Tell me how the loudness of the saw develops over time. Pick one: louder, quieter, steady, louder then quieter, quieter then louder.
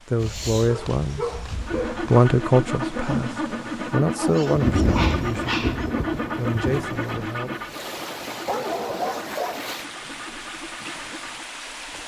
quieter.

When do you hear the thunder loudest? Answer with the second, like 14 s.
5 s.